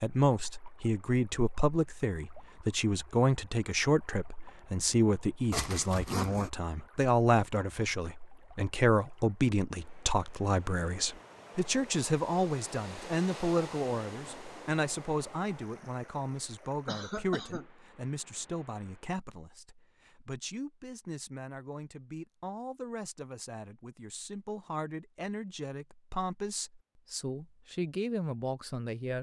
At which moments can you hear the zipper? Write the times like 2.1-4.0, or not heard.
5.5-6.5.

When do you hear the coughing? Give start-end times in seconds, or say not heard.
16.9-17.6.